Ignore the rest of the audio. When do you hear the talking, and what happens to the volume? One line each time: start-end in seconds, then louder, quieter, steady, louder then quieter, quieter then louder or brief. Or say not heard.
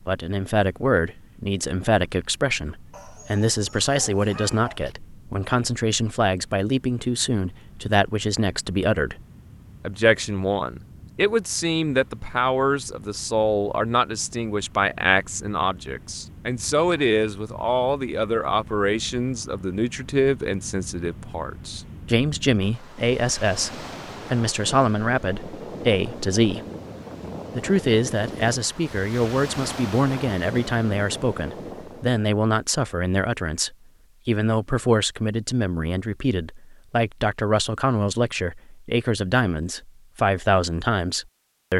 0.1-9.2 steady
9.8-26.6 steady
27.6-41.7 steady.